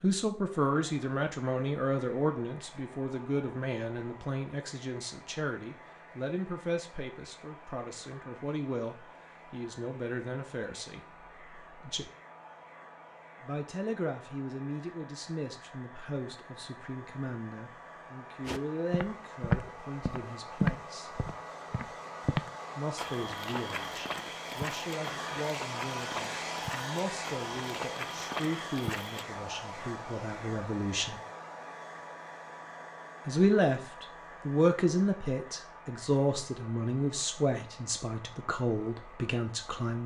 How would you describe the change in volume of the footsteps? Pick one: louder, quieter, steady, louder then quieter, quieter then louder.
quieter.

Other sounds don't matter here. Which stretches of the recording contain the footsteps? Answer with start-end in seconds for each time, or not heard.
18.4-29.2.